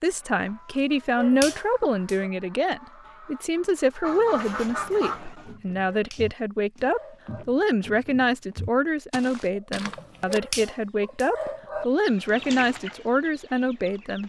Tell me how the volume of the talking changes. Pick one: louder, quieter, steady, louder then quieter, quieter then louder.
steady.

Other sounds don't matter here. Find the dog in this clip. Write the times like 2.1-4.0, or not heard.
1.1-2.3, 5.8-7.5, 10.2-11.8.